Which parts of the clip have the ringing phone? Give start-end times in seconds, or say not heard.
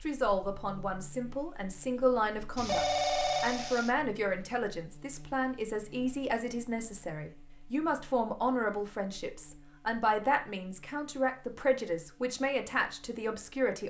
2.5-3.9.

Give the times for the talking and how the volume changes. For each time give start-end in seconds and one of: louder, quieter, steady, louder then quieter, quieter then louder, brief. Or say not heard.
0.0-13.8 steady.